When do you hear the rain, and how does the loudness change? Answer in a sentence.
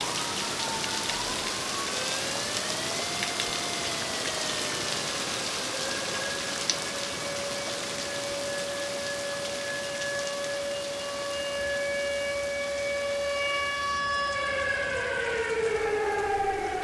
You can hear the rain from 0.0 to 16.7 s, getting quieter.